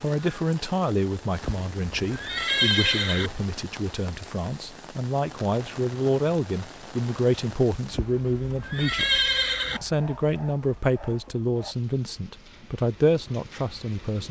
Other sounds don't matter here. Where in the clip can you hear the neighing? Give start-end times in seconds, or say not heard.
1.4-3.3, 7.9-9.8.